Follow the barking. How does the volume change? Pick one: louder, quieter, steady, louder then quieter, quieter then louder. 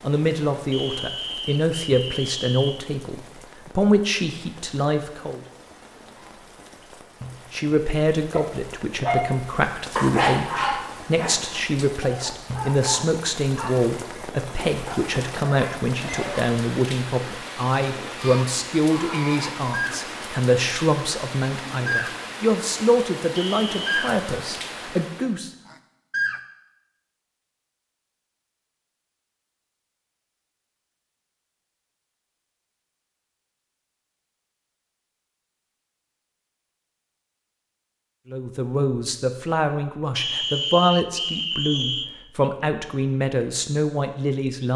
quieter.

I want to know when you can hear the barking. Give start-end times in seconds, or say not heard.
8.3-16.5.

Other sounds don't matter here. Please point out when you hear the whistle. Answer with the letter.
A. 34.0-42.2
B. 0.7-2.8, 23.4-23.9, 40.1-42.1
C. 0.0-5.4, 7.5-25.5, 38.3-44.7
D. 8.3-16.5
B.